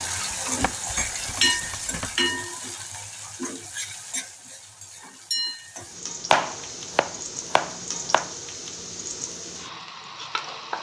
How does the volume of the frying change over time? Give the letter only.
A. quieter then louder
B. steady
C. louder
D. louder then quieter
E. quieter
E.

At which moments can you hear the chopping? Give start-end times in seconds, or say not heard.
0.3-2.1, 6.3-8.3.